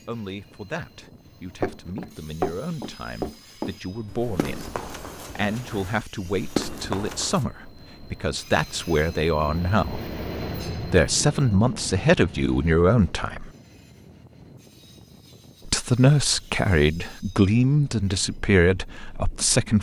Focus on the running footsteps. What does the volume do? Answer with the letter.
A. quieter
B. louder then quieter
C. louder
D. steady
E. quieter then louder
E.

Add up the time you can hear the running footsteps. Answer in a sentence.
You can hear the running footsteps for 6 seconds altogether.